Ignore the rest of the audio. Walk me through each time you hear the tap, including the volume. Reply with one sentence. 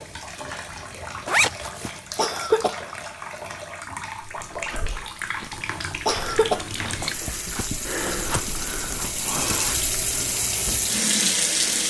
The tap can be heard from 0.0 to 11.8 s, getting louder.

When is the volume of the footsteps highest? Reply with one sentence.
The volume of the footsteps peaks at 8 seconds.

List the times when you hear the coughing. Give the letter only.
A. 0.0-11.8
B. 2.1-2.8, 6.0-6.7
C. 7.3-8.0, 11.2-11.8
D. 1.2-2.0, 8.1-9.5
B.